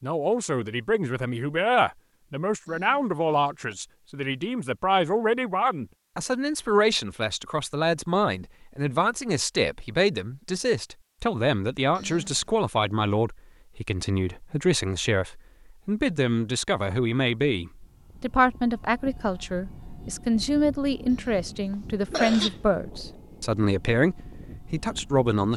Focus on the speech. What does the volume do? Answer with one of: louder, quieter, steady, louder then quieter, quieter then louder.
steady.